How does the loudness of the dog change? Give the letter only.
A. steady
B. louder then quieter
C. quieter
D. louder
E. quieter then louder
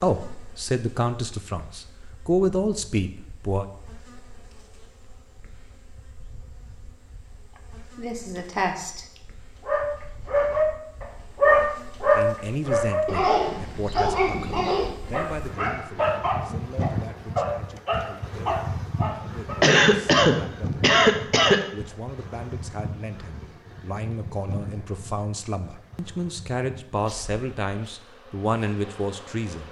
C.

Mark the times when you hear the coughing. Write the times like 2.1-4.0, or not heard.
8.0-9.1, 19.6-21.6.